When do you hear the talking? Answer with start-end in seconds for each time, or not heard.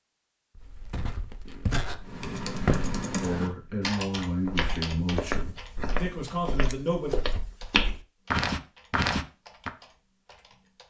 3.2-7.2.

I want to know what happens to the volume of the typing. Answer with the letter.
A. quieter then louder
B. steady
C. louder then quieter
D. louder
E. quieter
E.